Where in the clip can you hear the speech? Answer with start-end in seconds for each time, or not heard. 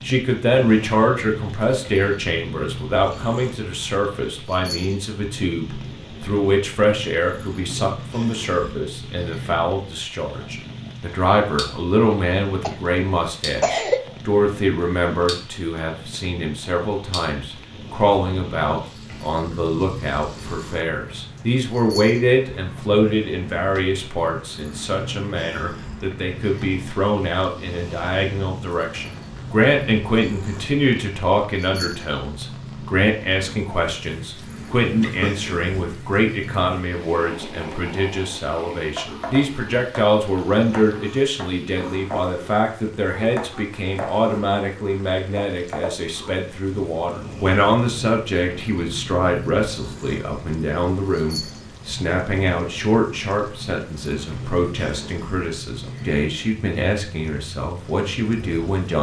0.0-58.9.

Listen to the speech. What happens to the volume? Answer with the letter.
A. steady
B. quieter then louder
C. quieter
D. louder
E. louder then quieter
A.